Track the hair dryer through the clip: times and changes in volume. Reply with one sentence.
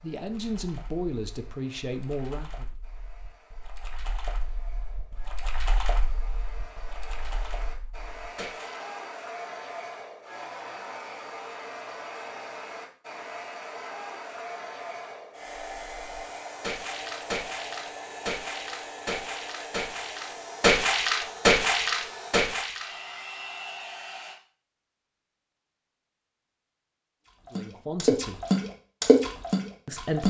The hair dryer can be heard from 0.0 to 24.4 s, getting louder.